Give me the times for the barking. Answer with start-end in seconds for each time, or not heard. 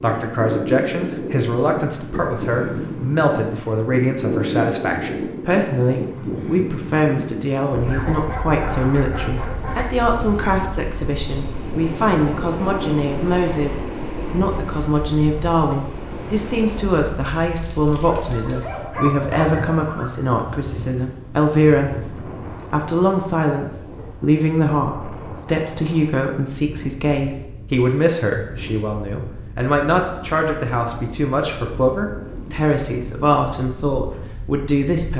7.9-9.9, 18.1-20.1.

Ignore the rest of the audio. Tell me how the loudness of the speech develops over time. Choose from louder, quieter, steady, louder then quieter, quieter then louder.
steady.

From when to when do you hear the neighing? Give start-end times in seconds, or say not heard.
not heard.